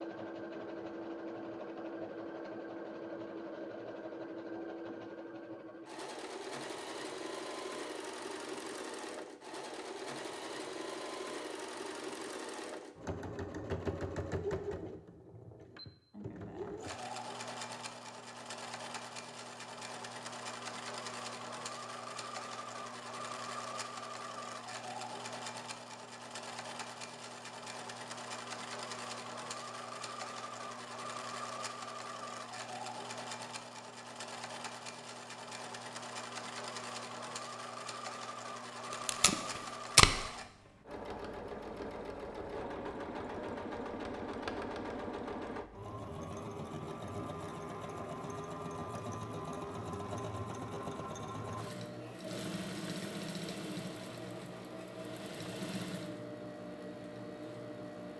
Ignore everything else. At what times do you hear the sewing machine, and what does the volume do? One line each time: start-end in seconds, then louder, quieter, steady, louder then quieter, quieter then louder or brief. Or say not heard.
0.0-58.1 steady.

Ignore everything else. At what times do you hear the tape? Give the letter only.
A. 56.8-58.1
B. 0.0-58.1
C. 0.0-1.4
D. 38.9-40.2
D.